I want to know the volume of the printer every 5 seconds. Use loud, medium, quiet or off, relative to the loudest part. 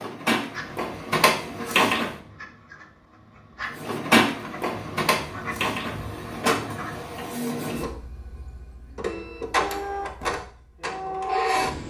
loud, medium, loud.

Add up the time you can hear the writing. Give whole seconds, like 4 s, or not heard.
7 s.